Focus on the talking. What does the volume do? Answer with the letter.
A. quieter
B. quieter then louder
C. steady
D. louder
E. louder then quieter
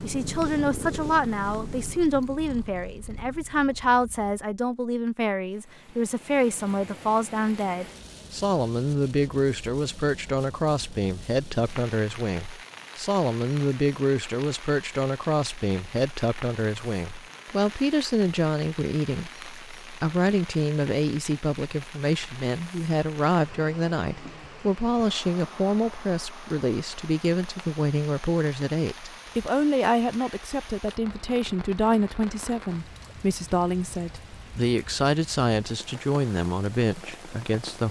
C.